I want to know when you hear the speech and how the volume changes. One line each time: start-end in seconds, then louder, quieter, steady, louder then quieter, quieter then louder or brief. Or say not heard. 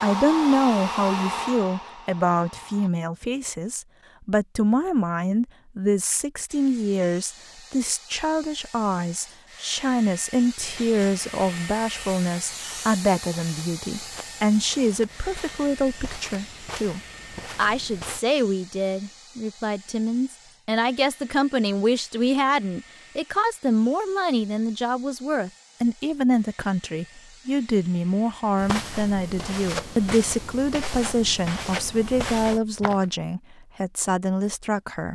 0.0-35.0 steady.